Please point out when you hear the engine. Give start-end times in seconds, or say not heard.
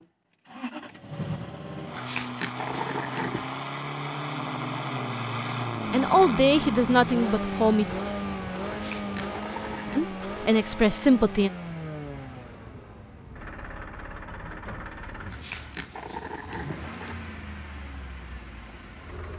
0.0-19.3.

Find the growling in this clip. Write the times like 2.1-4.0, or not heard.
1.9-3.6, 8.7-10.1, 15.3-17.1.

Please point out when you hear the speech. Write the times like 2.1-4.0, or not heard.
5.9-7.9, 9.9-11.5.